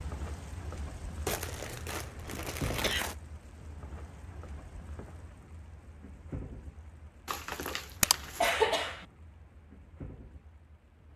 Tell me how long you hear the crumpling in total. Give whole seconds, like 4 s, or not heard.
3 s.